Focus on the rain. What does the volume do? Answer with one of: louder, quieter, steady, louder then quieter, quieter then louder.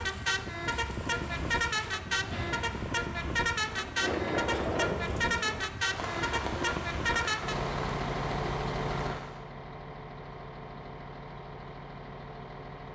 louder then quieter.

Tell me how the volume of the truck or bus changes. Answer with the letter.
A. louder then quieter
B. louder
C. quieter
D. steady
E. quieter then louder
C.